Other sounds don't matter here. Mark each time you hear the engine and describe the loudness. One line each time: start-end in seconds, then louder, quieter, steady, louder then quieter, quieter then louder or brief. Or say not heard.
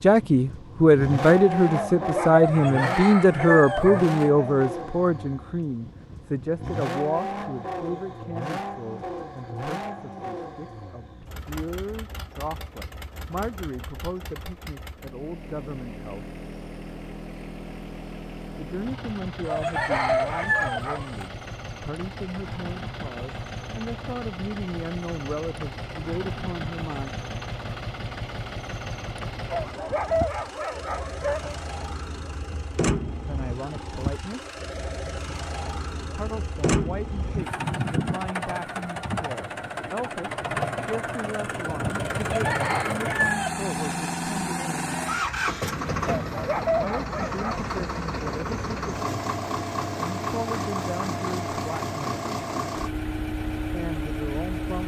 0.0-54.8 quieter then louder.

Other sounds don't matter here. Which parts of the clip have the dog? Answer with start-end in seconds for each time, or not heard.
1.7-4.5, 19.4-21.1, 29.4-31.6, 46.0-47.7.